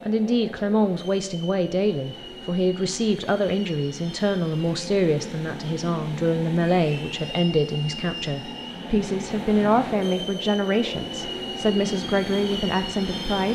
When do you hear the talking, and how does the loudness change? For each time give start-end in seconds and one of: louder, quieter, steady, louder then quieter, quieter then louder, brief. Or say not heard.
0.0-13.5 steady.